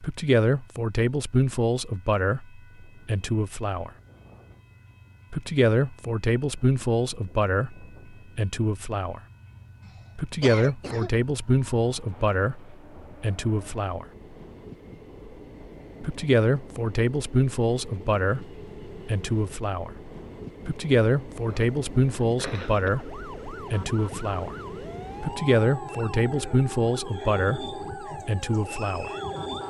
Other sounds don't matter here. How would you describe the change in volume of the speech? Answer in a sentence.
The loudness of the speech stays about the same.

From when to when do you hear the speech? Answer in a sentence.
The speech can be heard from 0.0 to 3.9 s, from 5.3 to 9.2 s, from 10.2 to 14.1 s, from 16.0 to 19.9 s, from 20.6 to 24.6 s and from 25.2 to 29.1 s.